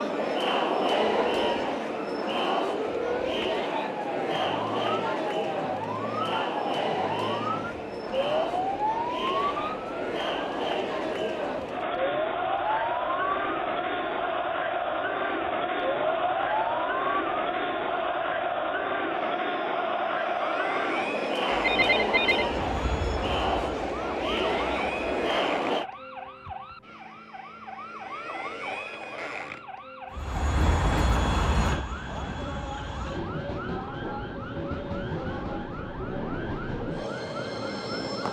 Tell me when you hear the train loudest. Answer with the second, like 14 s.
31 s.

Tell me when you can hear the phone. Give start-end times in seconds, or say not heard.
21.5-22.4.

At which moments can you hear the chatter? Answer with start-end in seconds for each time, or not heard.
0.0-25.9.